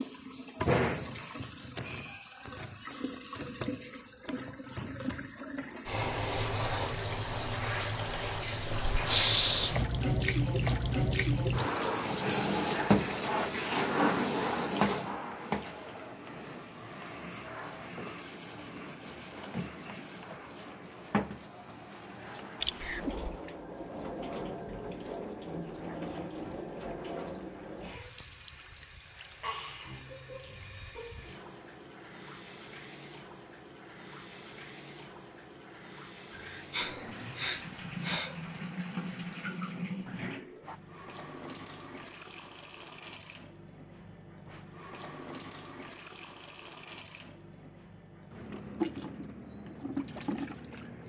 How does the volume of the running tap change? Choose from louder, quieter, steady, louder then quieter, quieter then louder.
quieter.